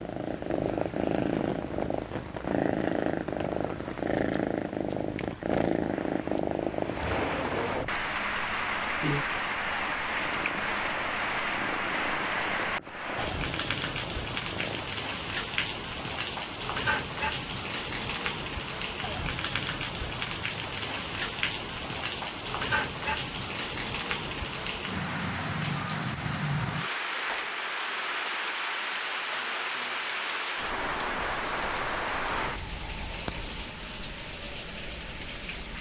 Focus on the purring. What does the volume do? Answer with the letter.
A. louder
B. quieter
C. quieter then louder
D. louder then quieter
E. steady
B.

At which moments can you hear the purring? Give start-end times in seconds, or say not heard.
0.0-14.8.